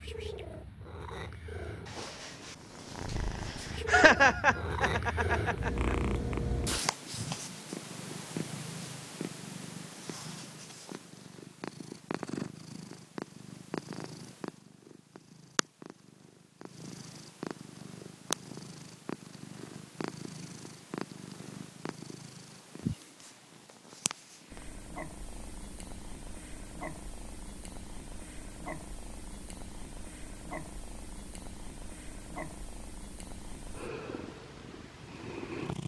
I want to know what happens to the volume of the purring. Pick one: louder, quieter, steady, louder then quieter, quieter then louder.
quieter.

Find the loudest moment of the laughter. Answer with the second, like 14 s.
4 s.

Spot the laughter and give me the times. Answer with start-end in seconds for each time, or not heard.
3.9-6.0.